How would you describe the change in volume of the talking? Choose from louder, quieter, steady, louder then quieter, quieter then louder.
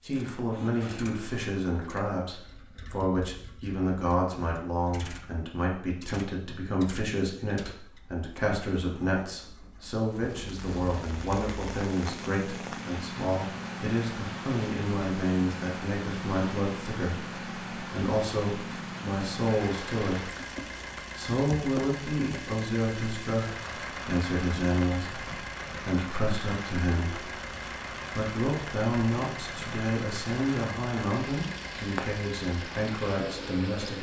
steady.